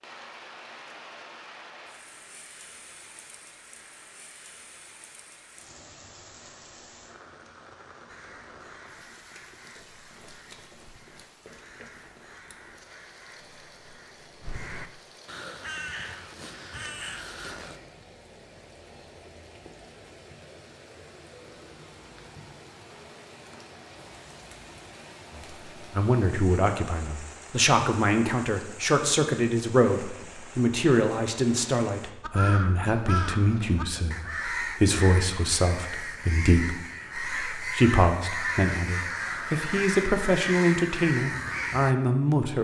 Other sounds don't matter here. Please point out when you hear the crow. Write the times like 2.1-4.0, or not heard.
8.1-17.8, 32.2-42.0.